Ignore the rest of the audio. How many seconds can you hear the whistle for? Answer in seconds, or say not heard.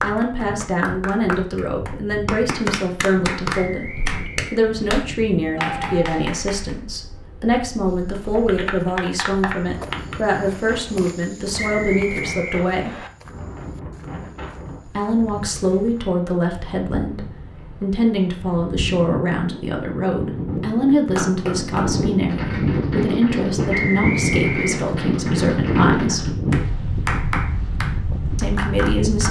4 s.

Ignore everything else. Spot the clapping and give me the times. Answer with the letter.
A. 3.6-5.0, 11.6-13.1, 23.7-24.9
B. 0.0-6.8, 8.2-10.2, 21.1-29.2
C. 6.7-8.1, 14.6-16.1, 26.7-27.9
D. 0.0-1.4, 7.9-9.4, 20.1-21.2
B.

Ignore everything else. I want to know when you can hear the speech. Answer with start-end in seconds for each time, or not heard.
0.0-12.9, 14.8-26.4, 28.4-29.2.